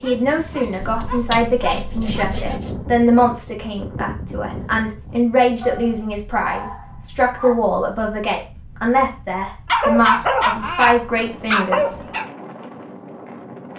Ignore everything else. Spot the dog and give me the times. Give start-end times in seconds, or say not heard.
0.0-2.4, 5.6-7.6, 9.7-12.2.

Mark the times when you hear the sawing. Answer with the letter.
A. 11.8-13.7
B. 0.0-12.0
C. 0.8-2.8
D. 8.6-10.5
C.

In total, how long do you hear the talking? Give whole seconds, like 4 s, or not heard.
12 s.